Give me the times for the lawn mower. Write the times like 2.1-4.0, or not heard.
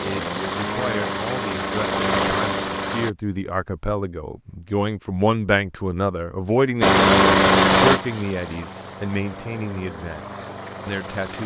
0.0-3.1, 6.8-11.4.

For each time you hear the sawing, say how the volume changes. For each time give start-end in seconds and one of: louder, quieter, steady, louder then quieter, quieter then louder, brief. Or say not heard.
not heard.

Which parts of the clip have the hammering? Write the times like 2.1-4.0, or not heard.
not heard.